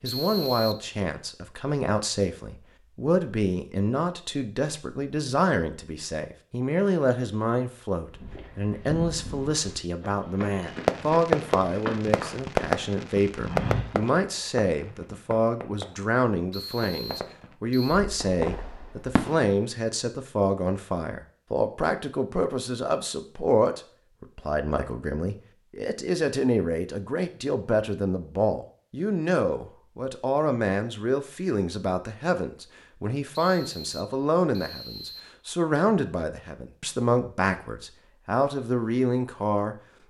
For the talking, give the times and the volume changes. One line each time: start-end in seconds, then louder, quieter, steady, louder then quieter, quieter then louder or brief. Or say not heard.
0.0-39.8 steady.